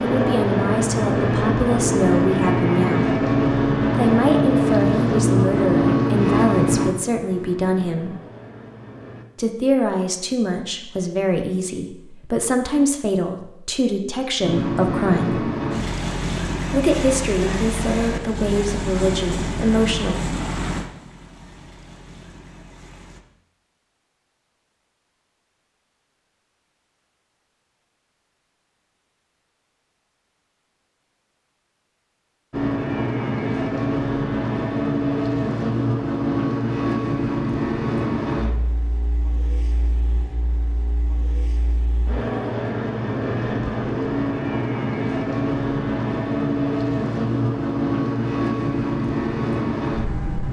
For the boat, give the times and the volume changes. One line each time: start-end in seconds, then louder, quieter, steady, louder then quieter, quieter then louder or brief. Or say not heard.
0.0-9.2 quieter
14.4-23.2 quieter
32.5-50.4 quieter then louder.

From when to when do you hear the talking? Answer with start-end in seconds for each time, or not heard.
0.0-3.1, 4.0-8.2, 9.3-15.4, 16.7-20.1.